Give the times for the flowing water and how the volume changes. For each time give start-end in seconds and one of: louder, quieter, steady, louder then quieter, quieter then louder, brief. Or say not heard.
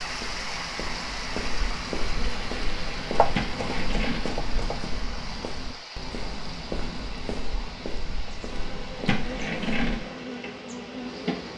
0.0-11.5 quieter.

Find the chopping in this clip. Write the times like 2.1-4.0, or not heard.
3.1-4.8.